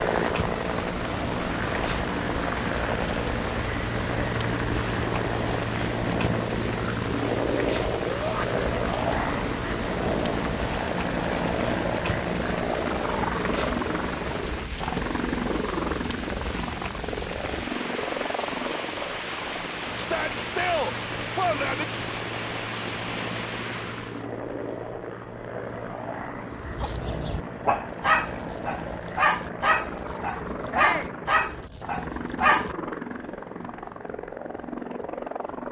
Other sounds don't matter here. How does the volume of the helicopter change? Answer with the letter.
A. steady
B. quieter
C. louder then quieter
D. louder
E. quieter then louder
B.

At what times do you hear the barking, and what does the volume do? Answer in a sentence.
You can hear the barking from 26.6 to 33.1 s, at a steady volume.